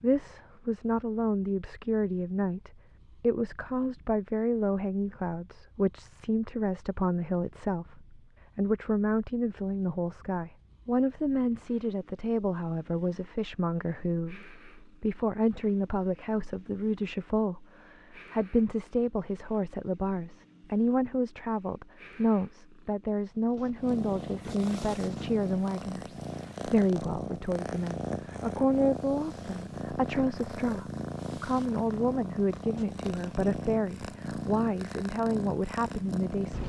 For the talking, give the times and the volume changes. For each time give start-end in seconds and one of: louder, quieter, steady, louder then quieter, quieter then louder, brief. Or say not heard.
0.0-36.6 steady.